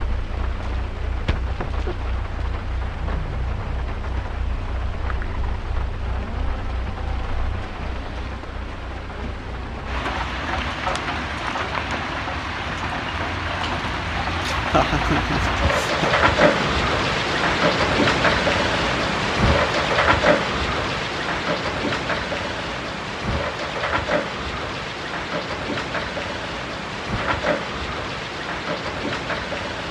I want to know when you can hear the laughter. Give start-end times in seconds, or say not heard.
14.6-16.9.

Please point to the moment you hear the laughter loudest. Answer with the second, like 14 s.
15 s.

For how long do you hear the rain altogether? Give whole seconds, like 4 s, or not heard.
30 s.